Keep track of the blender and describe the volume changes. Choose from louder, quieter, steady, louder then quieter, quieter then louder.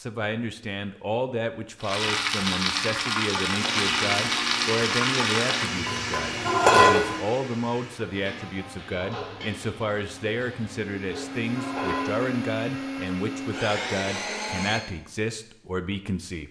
quieter then louder.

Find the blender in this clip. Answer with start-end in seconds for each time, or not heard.
3.5-14.8.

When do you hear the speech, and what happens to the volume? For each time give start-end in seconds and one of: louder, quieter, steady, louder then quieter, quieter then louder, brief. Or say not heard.
0.0-16.4 steady.